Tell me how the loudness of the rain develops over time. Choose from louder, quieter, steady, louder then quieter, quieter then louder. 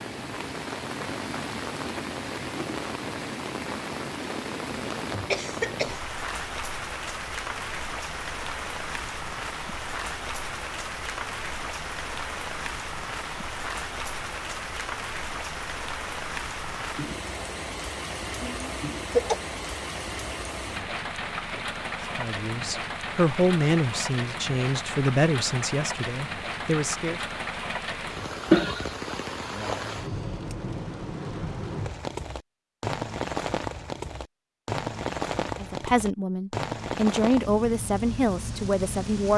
steady.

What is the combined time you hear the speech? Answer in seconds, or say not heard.
9 s.